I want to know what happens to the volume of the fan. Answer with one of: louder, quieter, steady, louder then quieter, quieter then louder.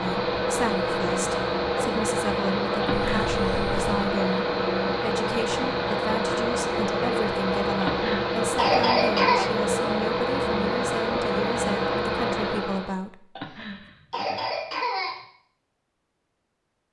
steady.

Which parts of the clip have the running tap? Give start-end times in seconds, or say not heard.
not heard.